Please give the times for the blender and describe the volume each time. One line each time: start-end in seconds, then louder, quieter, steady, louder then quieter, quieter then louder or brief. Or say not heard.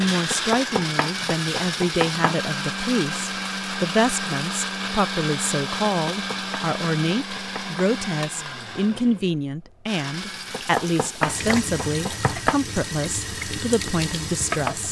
0.0-14.8 quieter.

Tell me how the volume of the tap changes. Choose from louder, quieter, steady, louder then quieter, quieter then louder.
steady.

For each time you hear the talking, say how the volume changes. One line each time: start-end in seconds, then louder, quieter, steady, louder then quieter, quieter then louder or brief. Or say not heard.
0.0-14.8 steady.